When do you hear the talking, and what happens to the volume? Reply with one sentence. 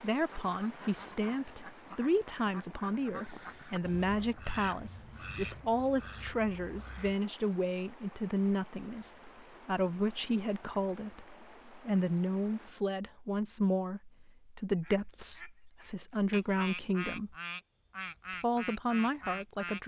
You can hear the talking from 0.0 to 17.4 s, at a steady volume; and briefly from 18.3 to 19.8 s.